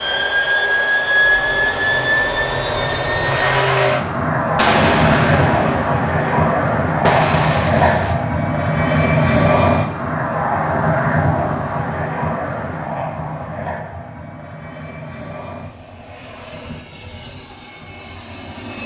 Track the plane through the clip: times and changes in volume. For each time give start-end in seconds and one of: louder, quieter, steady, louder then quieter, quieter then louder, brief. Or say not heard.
0.0-18.8 quieter.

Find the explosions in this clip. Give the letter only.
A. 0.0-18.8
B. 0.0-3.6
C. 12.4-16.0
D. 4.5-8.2
D.